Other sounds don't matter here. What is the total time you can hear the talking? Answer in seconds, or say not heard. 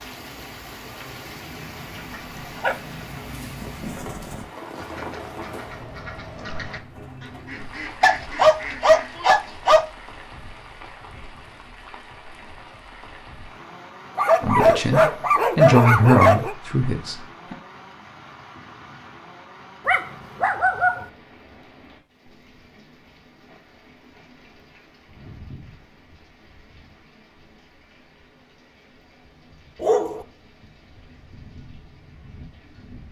3 s.